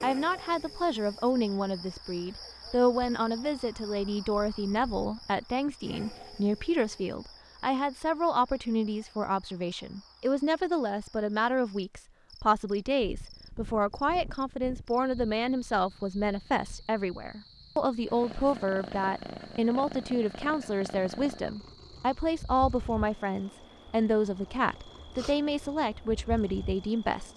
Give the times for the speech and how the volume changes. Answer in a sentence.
You can hear the speech from 0.0 to 27.3 s, at a steady volume.